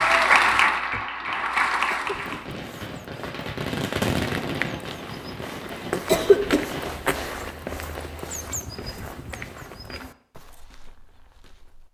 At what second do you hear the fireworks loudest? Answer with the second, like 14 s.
4 s.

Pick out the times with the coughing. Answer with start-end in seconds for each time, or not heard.
1.9-2.5, 6.0-6.6.